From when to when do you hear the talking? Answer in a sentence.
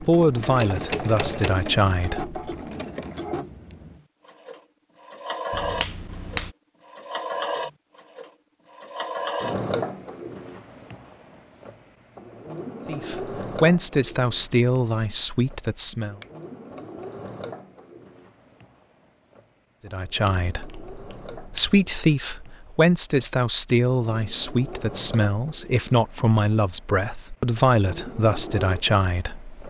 You can hear the talking from 0.0 to 2.4 s, from 12.8 to 16.2 s and from 19.9 to 29.6 s.